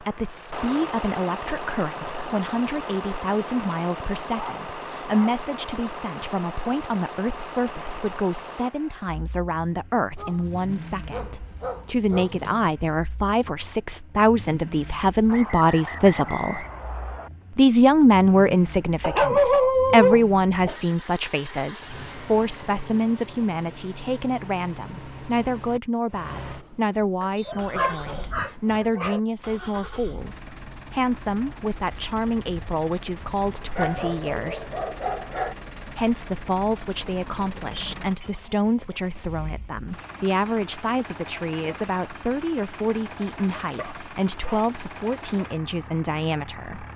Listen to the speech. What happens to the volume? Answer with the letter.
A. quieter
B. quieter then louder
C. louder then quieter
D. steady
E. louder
C.